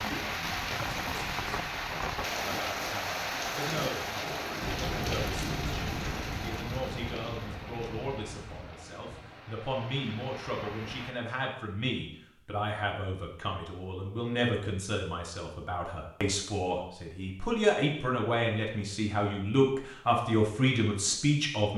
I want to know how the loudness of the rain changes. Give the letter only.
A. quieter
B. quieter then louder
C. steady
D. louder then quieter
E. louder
A.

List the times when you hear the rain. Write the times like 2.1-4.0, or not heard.
0.0-11.2.